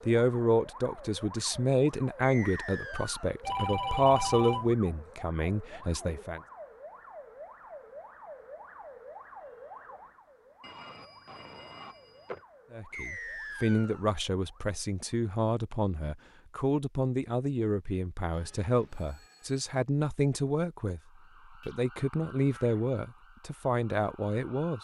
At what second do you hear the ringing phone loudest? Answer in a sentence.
The loudest moment of the ringing phone is at 4 seconds.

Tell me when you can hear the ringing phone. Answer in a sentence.
The ringing phone can be heard from 3.4 to 4.8 s, from 10.6 to 12.4 s and from 18.3 to 19.6 s.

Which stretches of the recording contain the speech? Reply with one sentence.
You can hear the speech from 0.1 to 6.4 s and from 12.7 to 24.7 s.